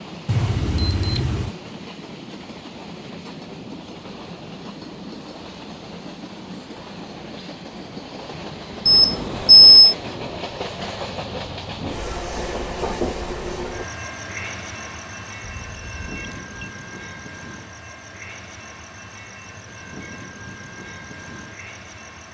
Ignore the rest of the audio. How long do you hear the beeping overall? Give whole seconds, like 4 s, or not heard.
4 s.